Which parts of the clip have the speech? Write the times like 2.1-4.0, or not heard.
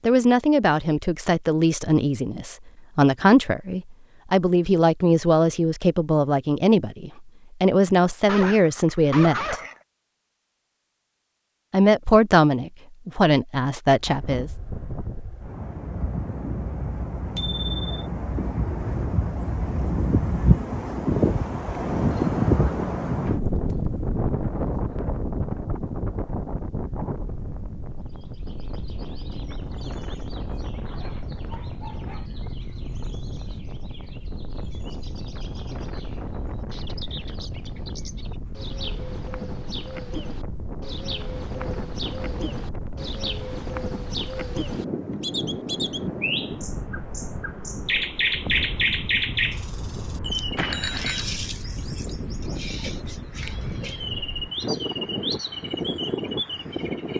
0.0-9.6, 11.7-14.5.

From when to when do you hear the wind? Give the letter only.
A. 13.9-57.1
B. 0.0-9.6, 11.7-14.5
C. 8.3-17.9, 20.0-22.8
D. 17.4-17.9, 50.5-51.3
A.